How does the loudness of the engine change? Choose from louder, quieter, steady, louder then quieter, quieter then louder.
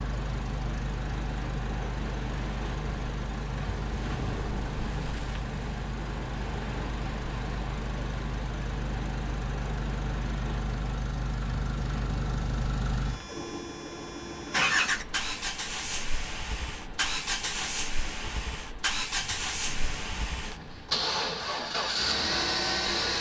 louder.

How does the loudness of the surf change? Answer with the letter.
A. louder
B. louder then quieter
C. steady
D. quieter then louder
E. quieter
E.